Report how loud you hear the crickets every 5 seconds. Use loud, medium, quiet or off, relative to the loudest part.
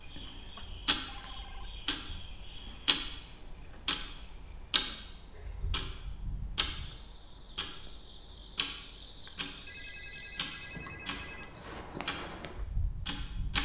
quiet, medium, loud.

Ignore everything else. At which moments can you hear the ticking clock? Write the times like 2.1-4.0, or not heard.
0.0-13.5.